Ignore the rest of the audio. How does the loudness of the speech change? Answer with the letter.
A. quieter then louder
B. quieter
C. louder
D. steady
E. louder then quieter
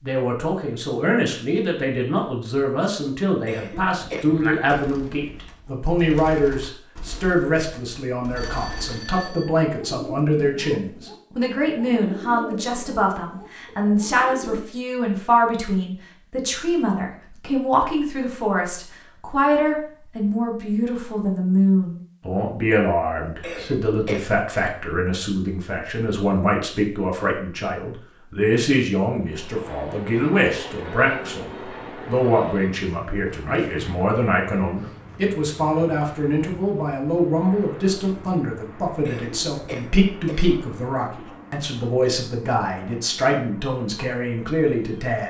D.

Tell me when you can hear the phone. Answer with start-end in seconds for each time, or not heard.
8.3-9.5.